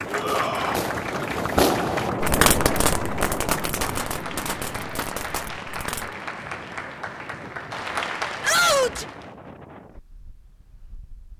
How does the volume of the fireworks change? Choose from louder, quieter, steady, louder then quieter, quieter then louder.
quieter.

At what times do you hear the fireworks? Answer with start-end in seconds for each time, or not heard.
0.2-6.2.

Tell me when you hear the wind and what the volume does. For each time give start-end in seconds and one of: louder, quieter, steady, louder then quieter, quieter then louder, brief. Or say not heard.
0.0-11.3 quieter.